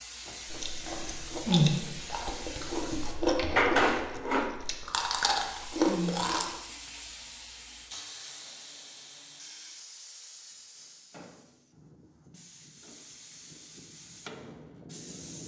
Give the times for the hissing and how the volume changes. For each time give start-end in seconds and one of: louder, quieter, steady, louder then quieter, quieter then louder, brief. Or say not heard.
0.0-15.4 louder then quieter.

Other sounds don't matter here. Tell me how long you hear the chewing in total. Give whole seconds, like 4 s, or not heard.
6 s.